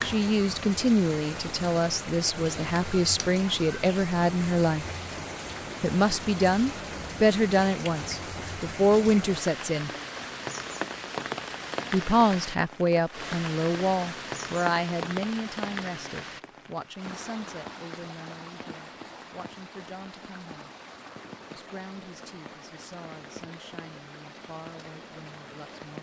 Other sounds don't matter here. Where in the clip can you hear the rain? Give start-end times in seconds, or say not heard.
0.0-25.9.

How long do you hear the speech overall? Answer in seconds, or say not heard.
22 s.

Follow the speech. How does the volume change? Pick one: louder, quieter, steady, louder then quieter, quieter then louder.
quieter.